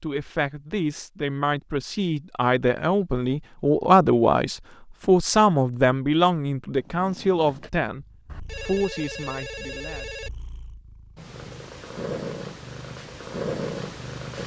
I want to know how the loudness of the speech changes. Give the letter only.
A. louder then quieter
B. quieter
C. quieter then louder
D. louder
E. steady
A.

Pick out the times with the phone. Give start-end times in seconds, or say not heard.
8.2-10.3.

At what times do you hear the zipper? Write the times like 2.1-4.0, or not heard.
not heard.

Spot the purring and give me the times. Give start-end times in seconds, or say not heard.
6.8-14.4.